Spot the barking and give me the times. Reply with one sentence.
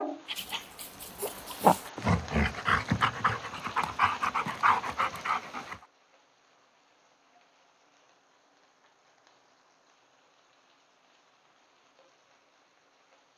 You can hear the barking from 0.2 to 5.8 s.